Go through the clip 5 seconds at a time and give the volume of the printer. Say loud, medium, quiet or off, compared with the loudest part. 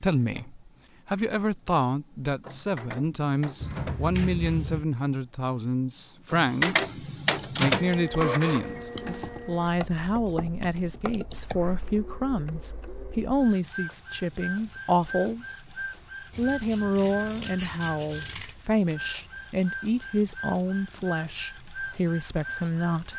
quiet, loud, quiet, medium, medium.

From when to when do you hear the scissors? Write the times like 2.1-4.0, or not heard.
3.6-4.8, 8.9-9.7, 16.3-18.6.